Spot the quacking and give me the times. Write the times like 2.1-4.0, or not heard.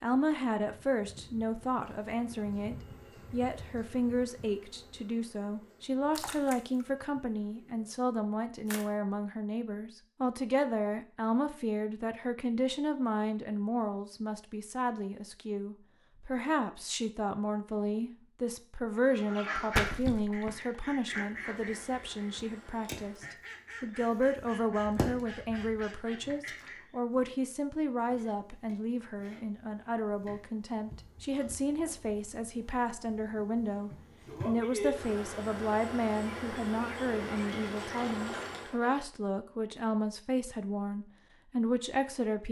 19.1-26.8.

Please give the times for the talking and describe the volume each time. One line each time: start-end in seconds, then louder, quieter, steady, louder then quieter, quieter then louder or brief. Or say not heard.
0.0-42.4 steady.